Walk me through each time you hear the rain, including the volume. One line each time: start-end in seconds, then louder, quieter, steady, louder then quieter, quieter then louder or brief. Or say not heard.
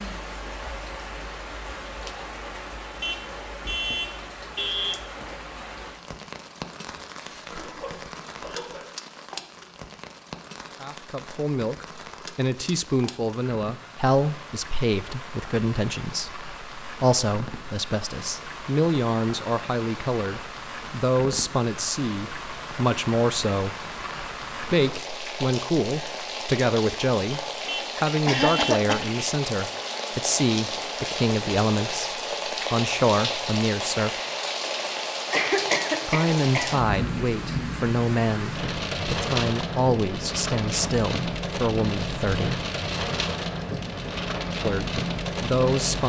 0.0-46.0 louder.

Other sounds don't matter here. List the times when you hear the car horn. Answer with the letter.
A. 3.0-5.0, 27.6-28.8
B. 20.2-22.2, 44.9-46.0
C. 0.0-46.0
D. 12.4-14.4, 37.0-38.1
A.